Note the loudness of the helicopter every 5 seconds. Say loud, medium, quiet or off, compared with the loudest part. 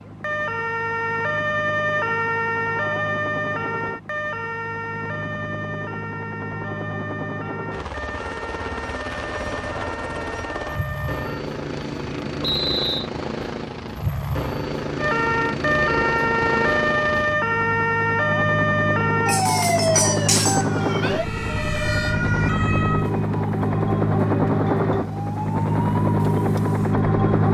quiet, medium, medium, medium, loud, loud.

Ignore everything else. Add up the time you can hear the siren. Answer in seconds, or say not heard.
24 s.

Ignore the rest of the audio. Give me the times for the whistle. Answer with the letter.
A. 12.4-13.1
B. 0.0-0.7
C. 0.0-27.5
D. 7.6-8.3
A.